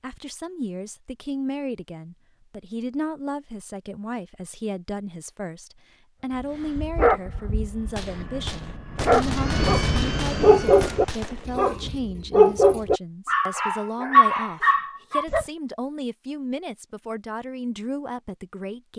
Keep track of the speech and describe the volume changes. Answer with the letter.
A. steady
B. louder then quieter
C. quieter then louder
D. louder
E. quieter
A.